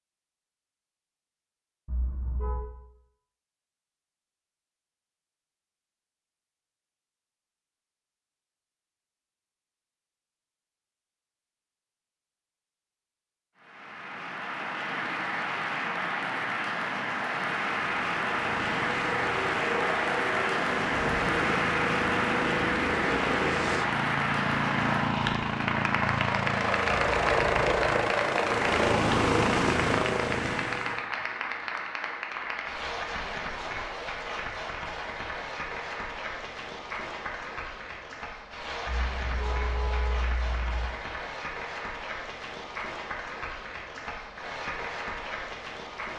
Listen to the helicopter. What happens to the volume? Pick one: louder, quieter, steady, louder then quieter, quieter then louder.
louder.